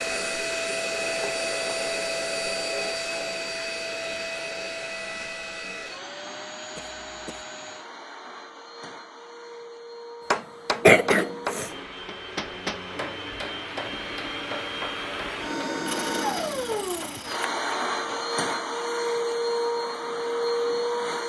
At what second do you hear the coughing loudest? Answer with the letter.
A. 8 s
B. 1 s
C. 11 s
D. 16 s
C.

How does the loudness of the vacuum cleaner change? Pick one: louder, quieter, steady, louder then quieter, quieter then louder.
quieter then louder.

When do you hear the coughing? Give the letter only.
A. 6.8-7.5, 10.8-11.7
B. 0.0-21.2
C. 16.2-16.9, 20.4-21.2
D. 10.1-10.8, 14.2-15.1
A.